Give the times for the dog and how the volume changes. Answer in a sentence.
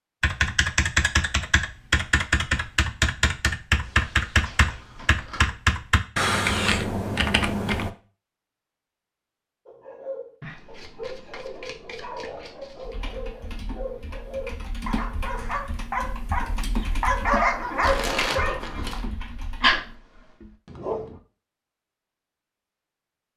You can hear the dog from 9.7 to 21.2 s, getting louder.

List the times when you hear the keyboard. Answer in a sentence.
The keyboard can be heard from 0.2 to 7.9 s and from 12.2 to 20.0 s.